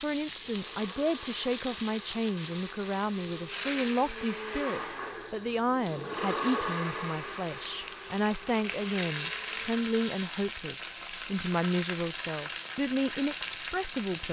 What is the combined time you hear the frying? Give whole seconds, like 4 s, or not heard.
14 s.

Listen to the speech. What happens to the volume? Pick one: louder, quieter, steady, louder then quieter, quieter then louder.
steady.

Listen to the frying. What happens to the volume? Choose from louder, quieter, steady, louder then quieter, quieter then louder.
quieter then louder.